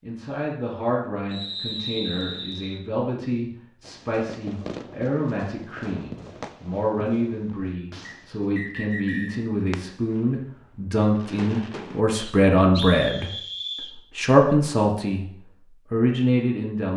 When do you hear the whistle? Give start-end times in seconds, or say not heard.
1.3-2.8, 8.1-9.3, 12.2-13.9.